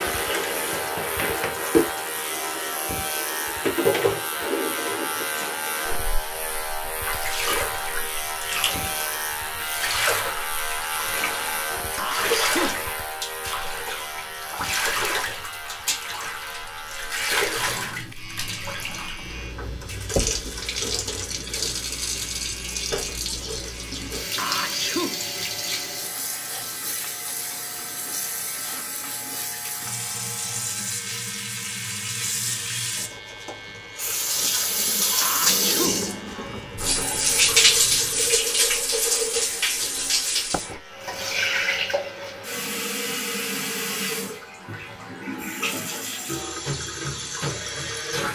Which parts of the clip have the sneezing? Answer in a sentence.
The sneezing can be heard from 11.9 to 12.9 s, from 24.4 to 25.3 s and from 35.2 to 36.0 s.